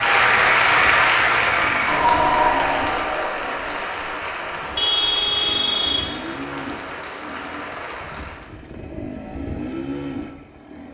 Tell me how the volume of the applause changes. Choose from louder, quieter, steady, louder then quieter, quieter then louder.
quieter.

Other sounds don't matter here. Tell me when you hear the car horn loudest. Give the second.
5 s.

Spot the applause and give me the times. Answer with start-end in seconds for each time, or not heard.
0.0-8.5.